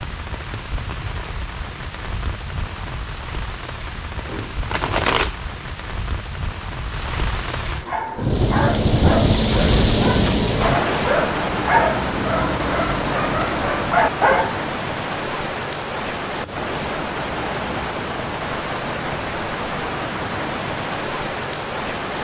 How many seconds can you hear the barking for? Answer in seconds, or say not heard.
7 s.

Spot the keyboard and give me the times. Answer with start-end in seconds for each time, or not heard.
not heard.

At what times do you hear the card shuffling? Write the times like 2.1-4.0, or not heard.
4.2-5.3.